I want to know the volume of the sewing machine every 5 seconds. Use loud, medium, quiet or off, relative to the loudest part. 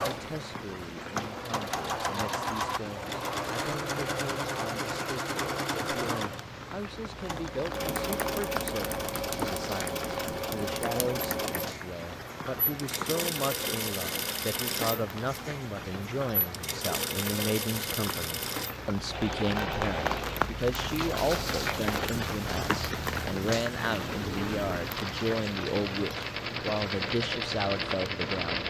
loud, loud, loud, loud, medium, loud.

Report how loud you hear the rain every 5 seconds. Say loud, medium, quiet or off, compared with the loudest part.
medium, medium, medium, medium, loud, medium.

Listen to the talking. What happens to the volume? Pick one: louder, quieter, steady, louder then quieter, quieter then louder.
louder.